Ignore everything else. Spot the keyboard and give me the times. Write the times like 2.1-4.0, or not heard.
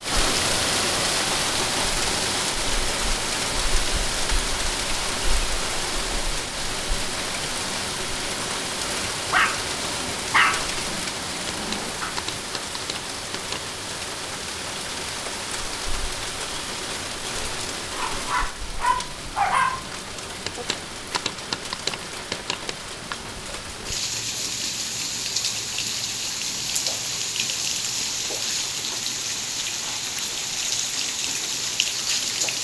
11.5-13.8, 20.4-23.1.